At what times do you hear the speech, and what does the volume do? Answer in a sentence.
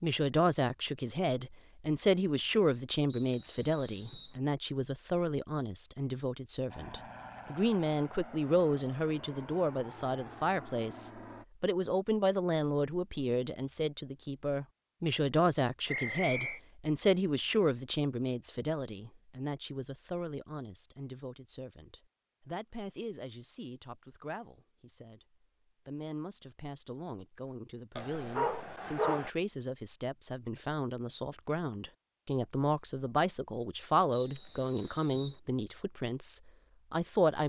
You can hear the speech from 0.0 to 37.4 s, getting quieter then louder.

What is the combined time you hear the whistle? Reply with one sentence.
The whistle can be heard for 3 seconds in total.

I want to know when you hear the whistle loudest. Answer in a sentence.
The volume of the whistle peaks at 16 seconds.